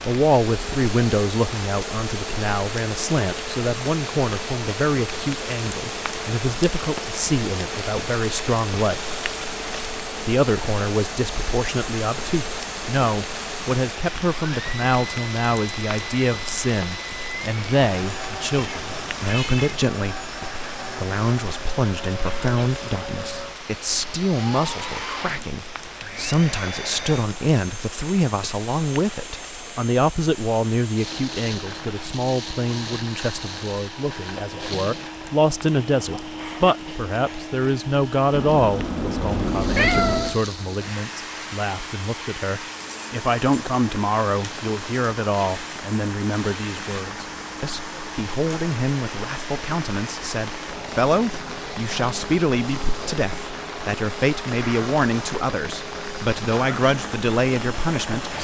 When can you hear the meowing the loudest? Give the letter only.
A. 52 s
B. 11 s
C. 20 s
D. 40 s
D.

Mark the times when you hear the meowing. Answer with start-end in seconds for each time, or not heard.
18.6-19.9, 38.3-40.4.